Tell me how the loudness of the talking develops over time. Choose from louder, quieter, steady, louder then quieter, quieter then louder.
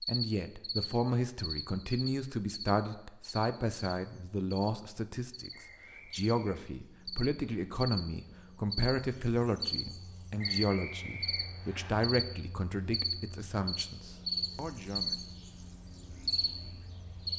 steady.